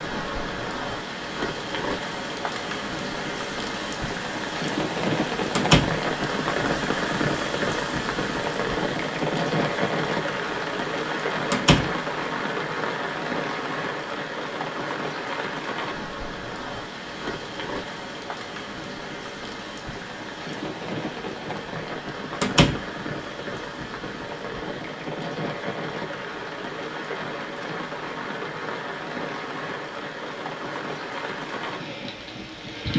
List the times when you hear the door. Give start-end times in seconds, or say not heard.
5.5-6.0, 11.5-11.9, 22.4-22.8.